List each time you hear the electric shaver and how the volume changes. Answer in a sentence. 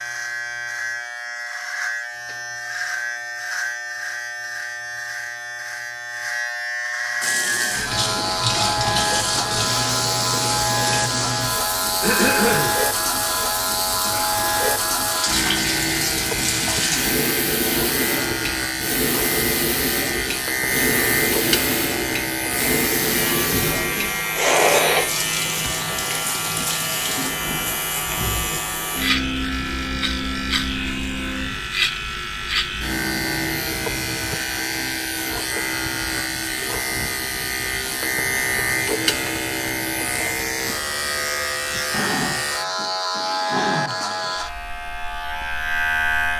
The electric shaver can be heard from 0.0 to 46.3 s, at a steady volume.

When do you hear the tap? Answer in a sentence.
The tap can be heard from 7.2 to 27.3 s.